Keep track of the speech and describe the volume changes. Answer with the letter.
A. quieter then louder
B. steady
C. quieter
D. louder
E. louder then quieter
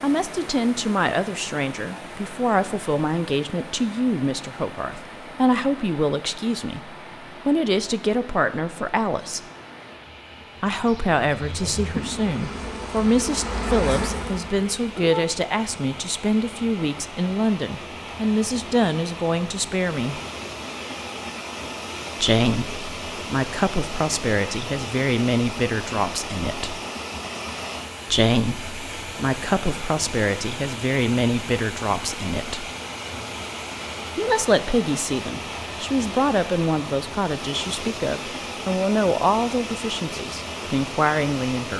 B.